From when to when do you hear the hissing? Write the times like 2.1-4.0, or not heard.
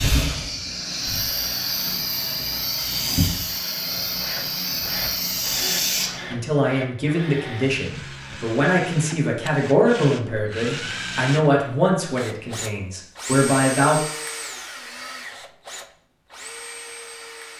0.0-6.3.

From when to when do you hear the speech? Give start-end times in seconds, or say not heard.
6.3-14.0.